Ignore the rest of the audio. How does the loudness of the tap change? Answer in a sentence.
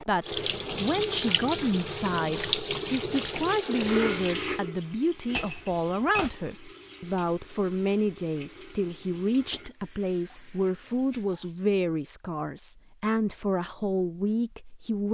The loudness of the tap goes down.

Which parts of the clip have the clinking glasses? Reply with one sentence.
You can hear the clinking glasses from 5.3 to 6.3 s.